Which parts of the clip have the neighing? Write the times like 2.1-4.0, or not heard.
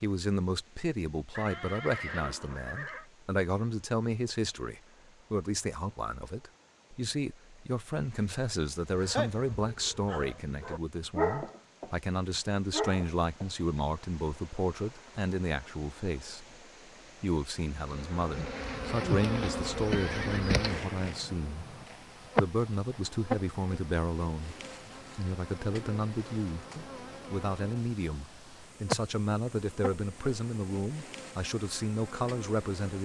1.3-3.0, 19.9-21.9.